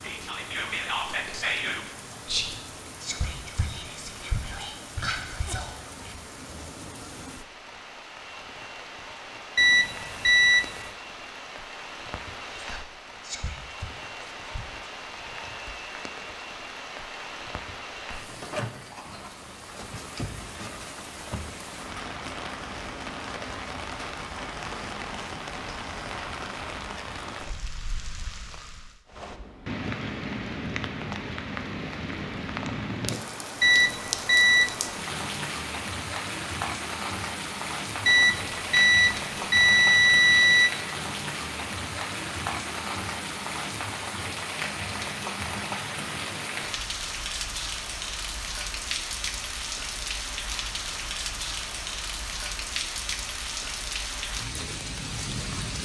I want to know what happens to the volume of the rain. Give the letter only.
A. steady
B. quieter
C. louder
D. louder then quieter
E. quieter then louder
C.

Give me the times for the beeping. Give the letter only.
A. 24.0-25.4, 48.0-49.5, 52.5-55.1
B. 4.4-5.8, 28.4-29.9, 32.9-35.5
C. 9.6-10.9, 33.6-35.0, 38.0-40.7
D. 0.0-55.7
C.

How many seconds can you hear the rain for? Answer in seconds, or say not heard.
56 s.